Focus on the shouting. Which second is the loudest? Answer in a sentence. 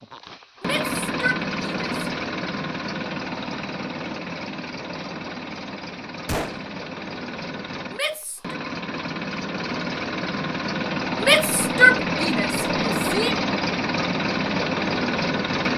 The loudest moment of the shouting is at 12 seconds.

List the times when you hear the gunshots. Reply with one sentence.
You can hear the gunshots from 6.2 to 6.7 s.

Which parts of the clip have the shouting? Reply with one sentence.
The shouting can be heard from 0.6 to 1.9 s, from 7.9 to 8.6 s and from 11.2 to 13.4 s.